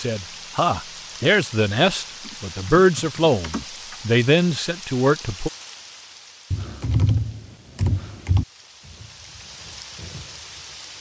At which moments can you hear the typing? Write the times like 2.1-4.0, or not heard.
2.2-4.0, 6.5-8.4.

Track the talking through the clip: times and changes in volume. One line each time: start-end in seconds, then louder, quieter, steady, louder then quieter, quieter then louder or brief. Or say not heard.
0.0-5.5 steady.